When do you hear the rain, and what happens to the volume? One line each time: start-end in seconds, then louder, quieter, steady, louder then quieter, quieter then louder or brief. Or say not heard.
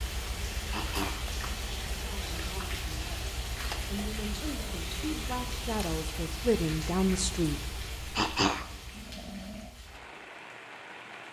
0.0-11.2 quieter.